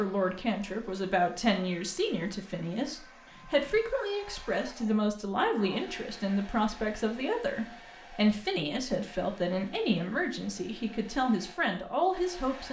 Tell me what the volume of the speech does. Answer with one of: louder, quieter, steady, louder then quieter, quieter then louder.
steady.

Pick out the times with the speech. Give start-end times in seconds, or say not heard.
0.0-12.6.